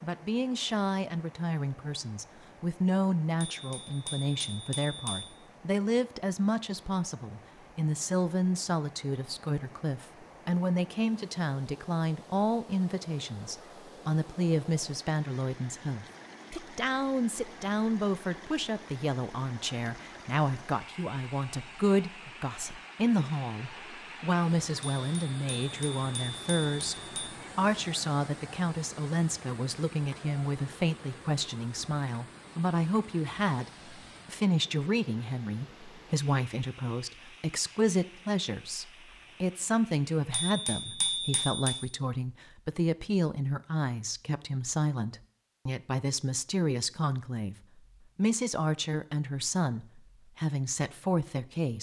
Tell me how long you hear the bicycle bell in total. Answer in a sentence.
The bicycle bell can be heard for 6 seconds in total.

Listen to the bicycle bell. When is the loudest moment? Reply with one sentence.
The volume of the bicycle bell peaks at 41 seconds.